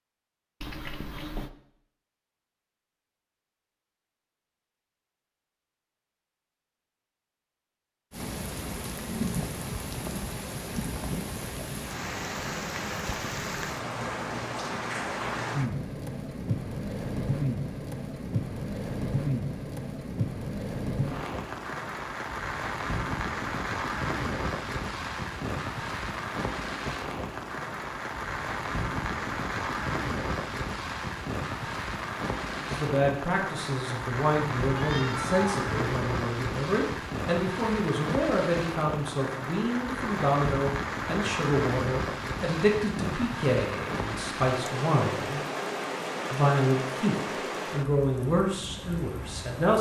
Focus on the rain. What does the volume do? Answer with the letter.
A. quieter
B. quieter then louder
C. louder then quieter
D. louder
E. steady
E.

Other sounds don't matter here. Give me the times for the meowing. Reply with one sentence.
The meowing can be heard from 0.6 to 1.5 s and from 34.7 to 35.5 s.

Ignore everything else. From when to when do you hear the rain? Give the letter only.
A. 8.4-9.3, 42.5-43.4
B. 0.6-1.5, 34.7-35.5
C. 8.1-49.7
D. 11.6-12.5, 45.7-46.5
C.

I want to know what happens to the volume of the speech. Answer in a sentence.
The loudness of the speech stays about the same.